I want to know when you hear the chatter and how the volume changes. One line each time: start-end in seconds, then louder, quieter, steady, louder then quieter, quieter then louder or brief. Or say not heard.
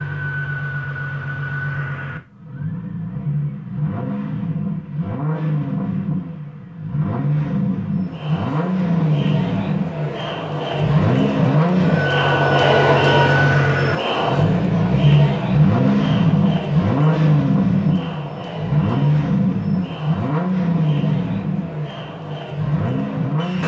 7.9-23.6 louder then quieter.